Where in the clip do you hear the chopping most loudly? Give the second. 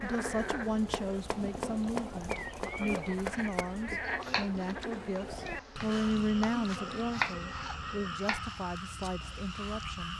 7 s.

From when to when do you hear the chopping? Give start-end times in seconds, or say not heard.
0.3-8.6.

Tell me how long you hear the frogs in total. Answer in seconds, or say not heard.
10 s.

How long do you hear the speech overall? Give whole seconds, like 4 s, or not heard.
10 s.